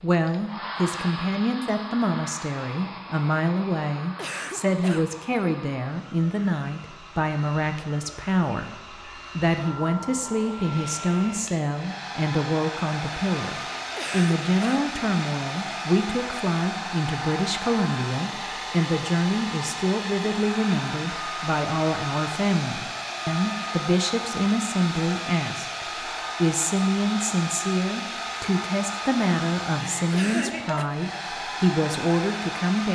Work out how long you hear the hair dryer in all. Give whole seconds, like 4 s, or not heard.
33 s.